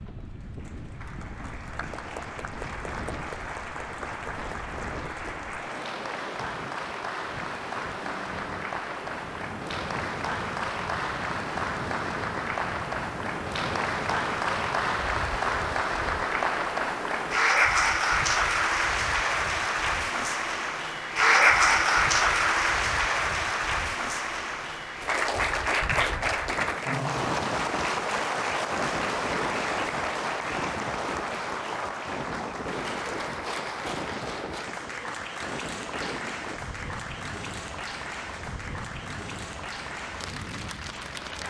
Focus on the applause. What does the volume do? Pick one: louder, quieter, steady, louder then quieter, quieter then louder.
louder then quieter.